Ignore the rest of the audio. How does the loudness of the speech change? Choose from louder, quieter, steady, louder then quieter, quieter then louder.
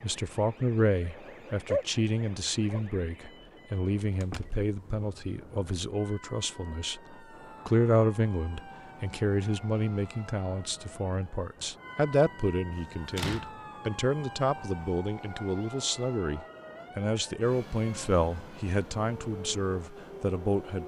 steady.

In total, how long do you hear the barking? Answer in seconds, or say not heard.
2 s.